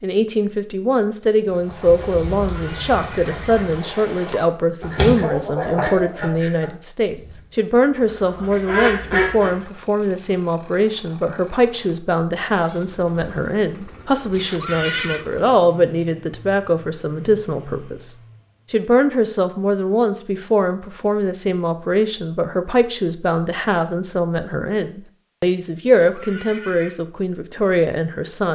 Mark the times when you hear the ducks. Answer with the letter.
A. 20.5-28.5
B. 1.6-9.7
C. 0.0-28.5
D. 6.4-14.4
B.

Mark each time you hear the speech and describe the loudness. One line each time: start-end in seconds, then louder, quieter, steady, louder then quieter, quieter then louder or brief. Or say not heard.
0.0-28.5 steady.